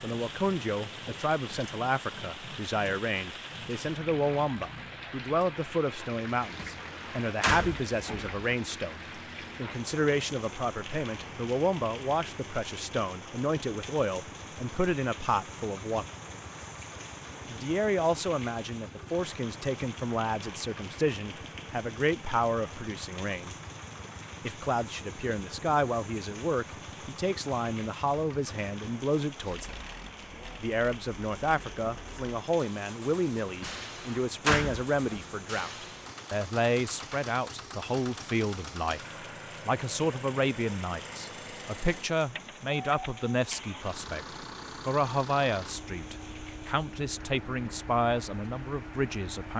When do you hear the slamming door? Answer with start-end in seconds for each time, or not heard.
6.5-8.4, 33.6-35.2.